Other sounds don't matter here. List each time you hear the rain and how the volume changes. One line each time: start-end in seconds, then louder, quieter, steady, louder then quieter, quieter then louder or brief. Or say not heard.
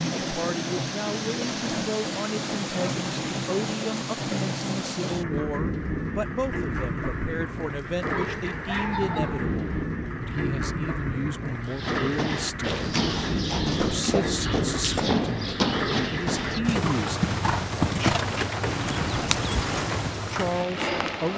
0.0-21.3 steady.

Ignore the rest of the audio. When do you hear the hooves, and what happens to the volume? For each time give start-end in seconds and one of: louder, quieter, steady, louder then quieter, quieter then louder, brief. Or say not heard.
11.7-20.3 steady.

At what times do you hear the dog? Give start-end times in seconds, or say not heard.
8.1-9.8.